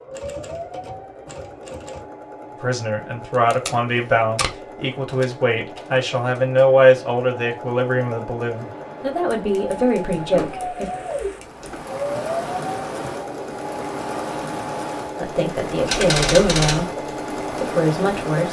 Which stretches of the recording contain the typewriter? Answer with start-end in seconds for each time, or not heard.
0.1-2.0, 5.1-6.7, 9.3-11.7, 15.8-16.9.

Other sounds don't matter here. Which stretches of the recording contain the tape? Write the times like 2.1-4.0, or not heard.
3.3-4.7.